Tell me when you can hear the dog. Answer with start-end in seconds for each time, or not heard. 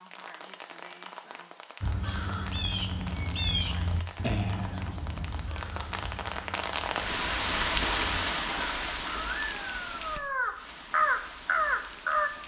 not heard.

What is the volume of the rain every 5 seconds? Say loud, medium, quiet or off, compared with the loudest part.
quiet, loud, quiet.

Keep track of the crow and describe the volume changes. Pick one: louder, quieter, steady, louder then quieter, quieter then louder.
quieter then louder.